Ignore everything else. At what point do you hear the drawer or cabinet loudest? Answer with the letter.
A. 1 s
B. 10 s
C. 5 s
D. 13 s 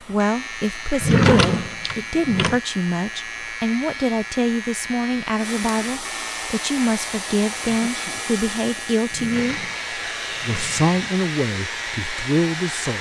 A.